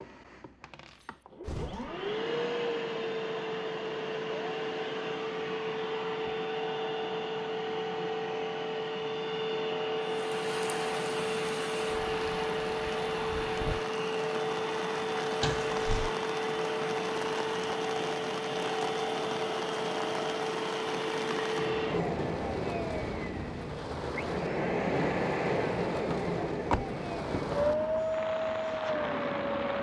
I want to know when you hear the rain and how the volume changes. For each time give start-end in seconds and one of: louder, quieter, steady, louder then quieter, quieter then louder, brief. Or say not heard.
10.0-29.7 steady.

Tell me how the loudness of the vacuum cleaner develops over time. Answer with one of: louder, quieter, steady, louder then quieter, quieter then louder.
steady.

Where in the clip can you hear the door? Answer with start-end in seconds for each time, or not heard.
0.8-2.0, 15.4-16.1, 26.1-27.6.